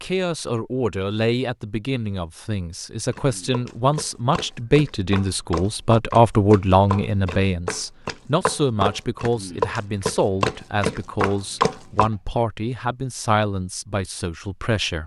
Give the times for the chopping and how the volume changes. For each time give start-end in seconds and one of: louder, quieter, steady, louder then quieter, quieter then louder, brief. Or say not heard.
3.1-12.1 louder.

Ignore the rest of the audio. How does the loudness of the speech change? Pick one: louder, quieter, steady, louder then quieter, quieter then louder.
louder then quieter.